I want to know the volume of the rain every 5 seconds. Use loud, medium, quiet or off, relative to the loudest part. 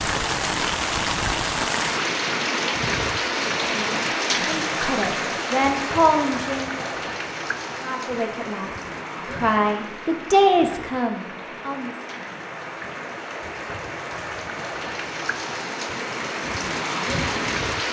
loud, medium, medium, loud.